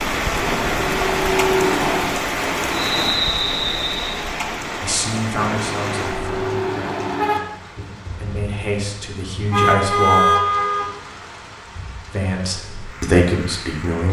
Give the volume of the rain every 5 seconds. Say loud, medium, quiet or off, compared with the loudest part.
loud, medium, quiet.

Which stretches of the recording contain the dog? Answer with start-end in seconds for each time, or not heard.
not heard.